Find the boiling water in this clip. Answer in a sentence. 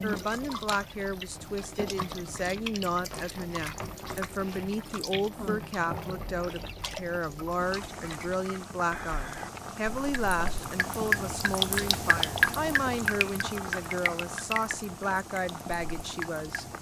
The boiling water can be heard from 0.0 to 16.7 s.